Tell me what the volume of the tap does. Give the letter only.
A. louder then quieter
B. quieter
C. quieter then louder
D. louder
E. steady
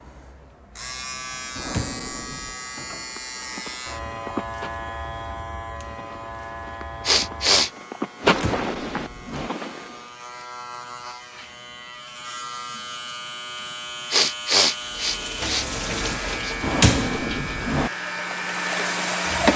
C.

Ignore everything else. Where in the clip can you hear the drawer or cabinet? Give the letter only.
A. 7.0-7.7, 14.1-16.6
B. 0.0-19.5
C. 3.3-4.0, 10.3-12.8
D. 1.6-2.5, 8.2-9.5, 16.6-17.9
D.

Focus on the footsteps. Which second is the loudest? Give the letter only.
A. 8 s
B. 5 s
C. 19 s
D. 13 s
A.